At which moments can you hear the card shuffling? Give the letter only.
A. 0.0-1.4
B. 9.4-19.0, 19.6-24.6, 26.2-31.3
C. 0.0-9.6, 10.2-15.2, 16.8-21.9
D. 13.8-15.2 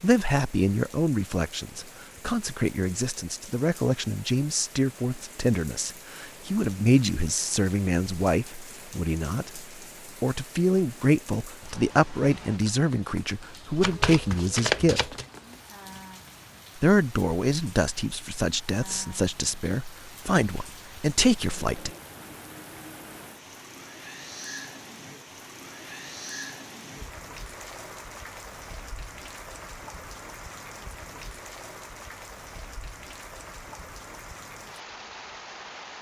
D.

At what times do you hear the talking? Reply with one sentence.
The talking can be heard from 0.0 to 9.6 s, from 10.2 to 15.2 s and from 16.8 to 21.9 s.